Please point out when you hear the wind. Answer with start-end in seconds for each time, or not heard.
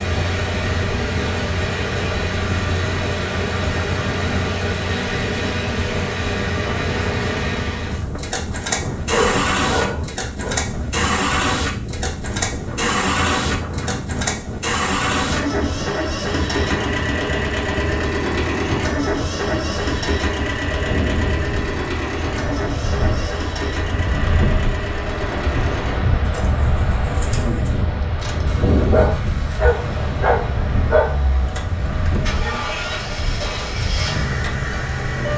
0.0-35.3.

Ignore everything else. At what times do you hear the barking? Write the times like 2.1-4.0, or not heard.
9.1-10.7, 28.8-31.1.